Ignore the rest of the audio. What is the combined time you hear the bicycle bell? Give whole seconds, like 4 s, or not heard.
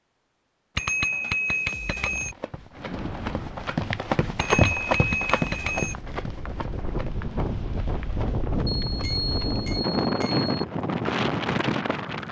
5 s.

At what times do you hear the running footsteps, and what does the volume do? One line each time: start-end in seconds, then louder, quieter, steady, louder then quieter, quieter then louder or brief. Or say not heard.
1.9-10.1 louder then quieter.